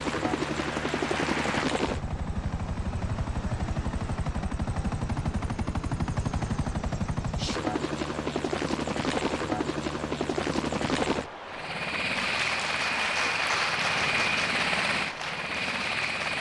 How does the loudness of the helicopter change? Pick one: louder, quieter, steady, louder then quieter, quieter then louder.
steady.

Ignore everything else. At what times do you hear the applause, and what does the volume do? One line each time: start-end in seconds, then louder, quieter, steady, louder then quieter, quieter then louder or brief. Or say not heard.
0.1-1.6 brief
12.1-16.3 quieter.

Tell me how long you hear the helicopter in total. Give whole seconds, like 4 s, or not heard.
16 s.